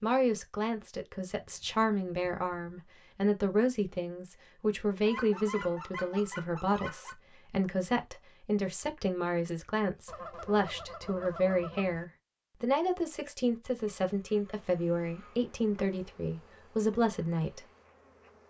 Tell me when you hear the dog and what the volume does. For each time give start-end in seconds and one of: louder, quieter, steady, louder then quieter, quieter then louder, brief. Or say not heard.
not heard.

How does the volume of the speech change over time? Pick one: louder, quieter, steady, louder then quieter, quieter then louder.
steady.